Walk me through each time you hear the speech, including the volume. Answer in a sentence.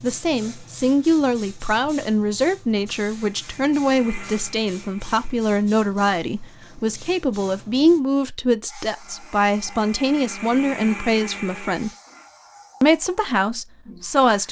The speech can be heard from 0.0 to 11.9 s, at a steady volume; and briefly from 12.8 to 14.4 s.